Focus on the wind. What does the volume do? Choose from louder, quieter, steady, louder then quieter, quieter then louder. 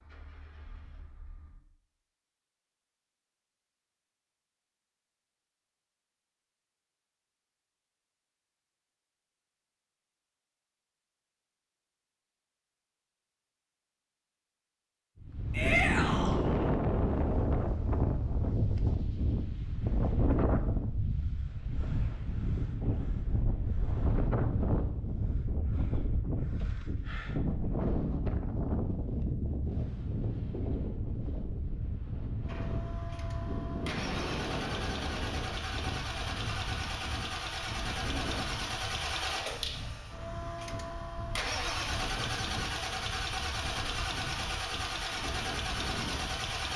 quieter.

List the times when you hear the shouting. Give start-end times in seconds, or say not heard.
15.5-16.4.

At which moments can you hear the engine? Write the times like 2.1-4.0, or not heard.
0.0-1.6, 32.5-46.7.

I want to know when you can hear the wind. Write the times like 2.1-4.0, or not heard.
15.2-46.7.